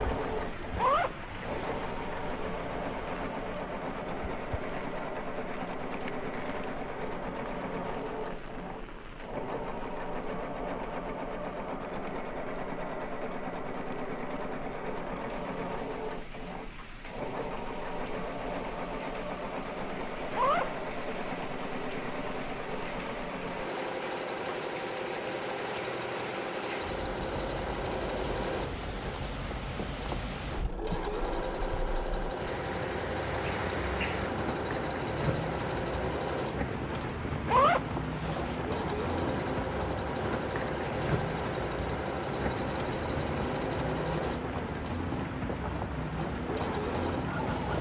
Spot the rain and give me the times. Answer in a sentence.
The rain can be heard from 0.0 to 47.7 s.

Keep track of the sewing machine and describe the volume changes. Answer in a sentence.
The volume of the sewing machine stays about the same.